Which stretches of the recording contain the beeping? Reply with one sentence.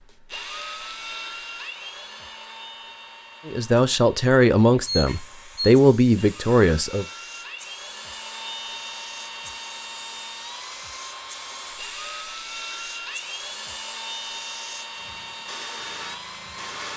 The beeping can be heard from 4.8 to 5.7 s.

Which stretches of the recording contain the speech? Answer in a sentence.
The speech can be heard from 3.5 to 7.0 s.